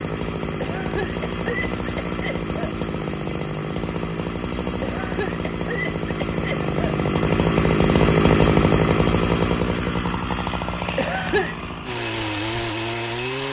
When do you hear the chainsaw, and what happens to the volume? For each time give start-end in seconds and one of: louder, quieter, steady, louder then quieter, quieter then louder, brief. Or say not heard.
0.0-13.4 louder then quieter.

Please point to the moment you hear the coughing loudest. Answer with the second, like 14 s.
11 s.